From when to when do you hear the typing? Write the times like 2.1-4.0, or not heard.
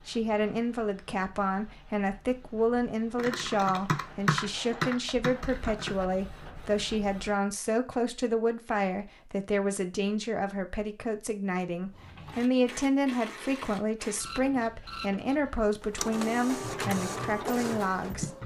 3.1-5.9, 16.6-18.4.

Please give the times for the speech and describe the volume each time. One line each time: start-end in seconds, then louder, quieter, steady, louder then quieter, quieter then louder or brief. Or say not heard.
0.1-18.4 steady.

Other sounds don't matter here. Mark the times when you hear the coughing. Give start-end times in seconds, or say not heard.
not heard.